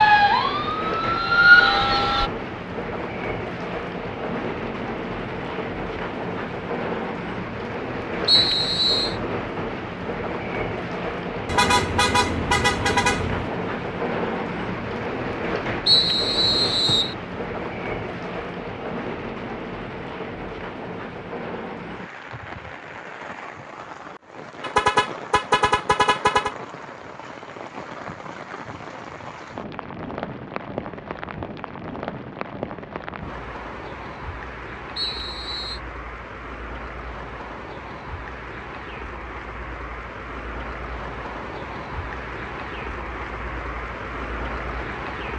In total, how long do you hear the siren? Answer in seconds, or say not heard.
2 s.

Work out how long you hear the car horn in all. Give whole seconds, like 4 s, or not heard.
4 s.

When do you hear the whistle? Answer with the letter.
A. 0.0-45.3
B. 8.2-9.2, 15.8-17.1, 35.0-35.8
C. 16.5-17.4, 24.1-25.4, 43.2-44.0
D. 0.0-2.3
B.